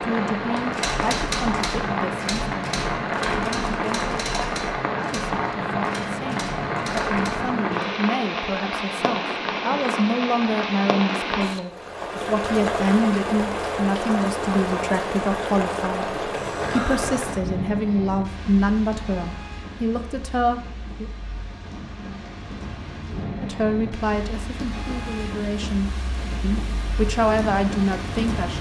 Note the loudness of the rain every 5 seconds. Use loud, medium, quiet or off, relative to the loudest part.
loud, loud, loud, loud, medium, medium.